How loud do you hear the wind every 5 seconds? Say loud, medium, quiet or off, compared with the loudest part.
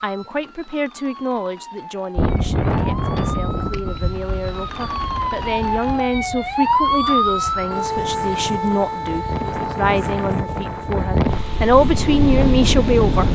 loud, medium, loud.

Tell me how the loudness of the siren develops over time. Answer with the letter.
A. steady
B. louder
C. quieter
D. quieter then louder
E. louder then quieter
E.